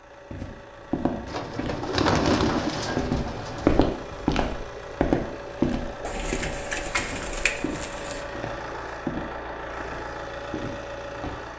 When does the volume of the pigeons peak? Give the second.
2 s.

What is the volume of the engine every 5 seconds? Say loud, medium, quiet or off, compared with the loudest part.
medium, loud, loud.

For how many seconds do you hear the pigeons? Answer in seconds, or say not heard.
5 s.